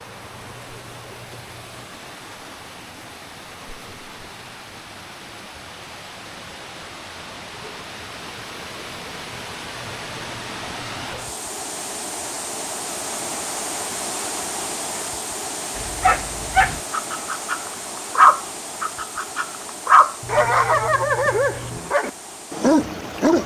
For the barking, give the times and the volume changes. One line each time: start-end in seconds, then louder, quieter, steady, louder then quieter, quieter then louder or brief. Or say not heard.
15.8-23.4 louder then quieter.